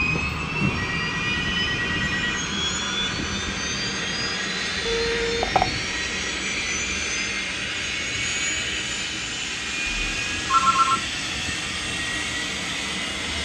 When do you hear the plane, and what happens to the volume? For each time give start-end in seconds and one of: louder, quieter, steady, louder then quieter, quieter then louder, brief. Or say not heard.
0.0-13.3 steady.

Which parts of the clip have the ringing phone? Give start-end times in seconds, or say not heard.
0.1-2.4, 4.8-5.8, 9.8-11.0.